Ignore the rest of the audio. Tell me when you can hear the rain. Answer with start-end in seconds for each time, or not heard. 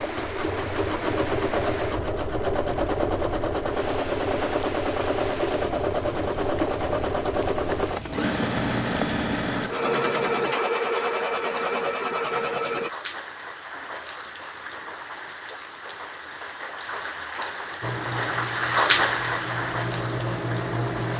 0.0-21.1.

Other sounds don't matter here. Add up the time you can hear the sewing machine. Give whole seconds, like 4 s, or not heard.
16 s.